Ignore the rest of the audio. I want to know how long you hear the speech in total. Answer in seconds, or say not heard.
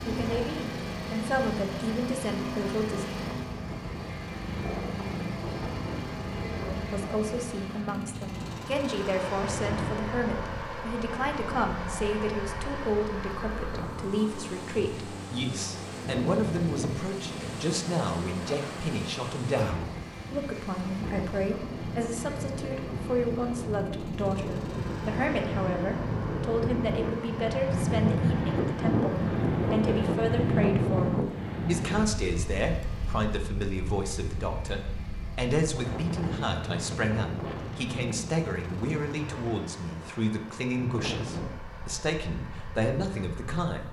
40 s.